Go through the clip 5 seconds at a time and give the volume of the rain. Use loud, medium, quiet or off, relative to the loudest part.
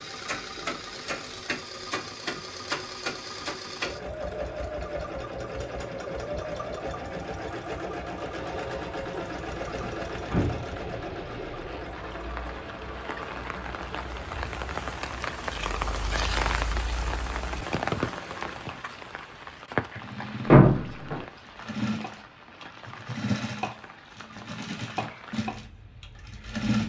off, off, medium, loud, quiet, quiet.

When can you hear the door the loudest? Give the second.
21 s.